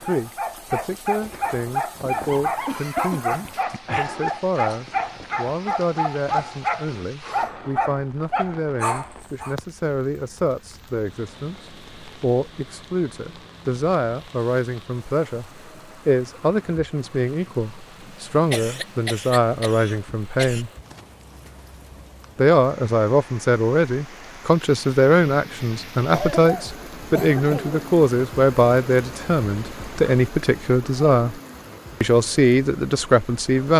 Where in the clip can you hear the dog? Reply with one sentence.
The dog can be heard from 0.0 to 9.6 s.